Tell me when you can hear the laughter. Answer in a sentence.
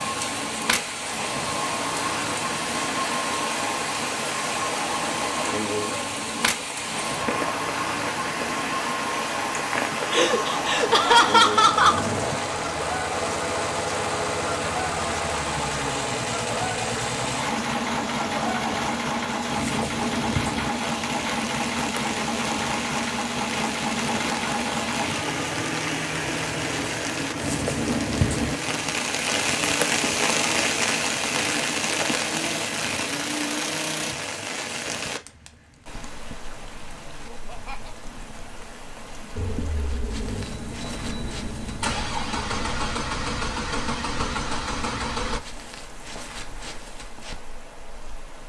The laughter can be heard from 10.1 to 12.1 s and from 37.2 to 38.0 s.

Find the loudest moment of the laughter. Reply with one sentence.
The loudest moment of the laughter is at 11 seconds.